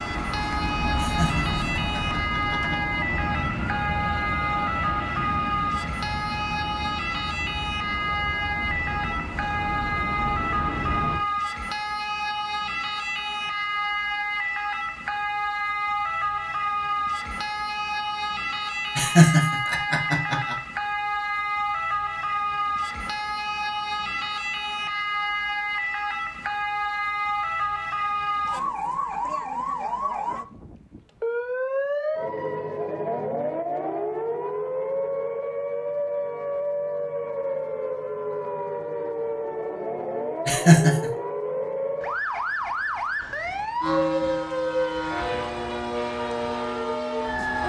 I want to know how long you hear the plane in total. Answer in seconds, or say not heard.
15 s.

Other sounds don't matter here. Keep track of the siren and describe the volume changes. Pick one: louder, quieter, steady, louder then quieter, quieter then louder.
steady.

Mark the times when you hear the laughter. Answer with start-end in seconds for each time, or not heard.
1.0-2.8, 18.9-20.6, 40.5-41.1.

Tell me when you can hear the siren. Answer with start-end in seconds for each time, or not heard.
0.0-47.6.